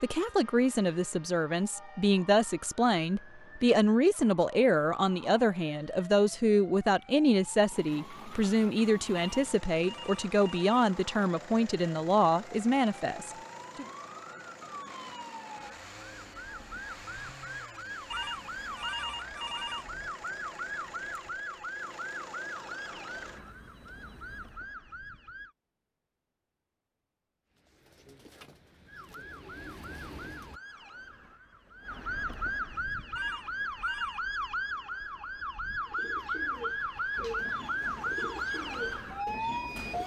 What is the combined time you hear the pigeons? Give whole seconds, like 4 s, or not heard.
7 s.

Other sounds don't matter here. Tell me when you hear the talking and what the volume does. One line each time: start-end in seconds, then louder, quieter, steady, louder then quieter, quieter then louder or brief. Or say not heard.
0.0-13.8 steady.